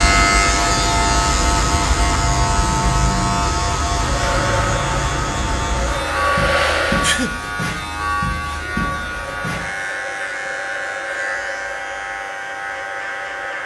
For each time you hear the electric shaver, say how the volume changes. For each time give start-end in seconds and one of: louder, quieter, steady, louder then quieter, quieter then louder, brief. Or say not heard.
0.0-13.6 quieter.